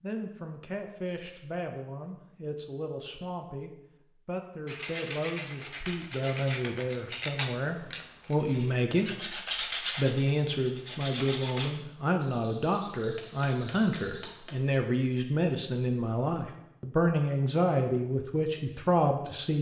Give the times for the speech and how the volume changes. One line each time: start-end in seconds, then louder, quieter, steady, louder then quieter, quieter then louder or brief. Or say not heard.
0.0-19.5 louder.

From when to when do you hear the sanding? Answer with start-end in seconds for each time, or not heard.
4.7-11.8.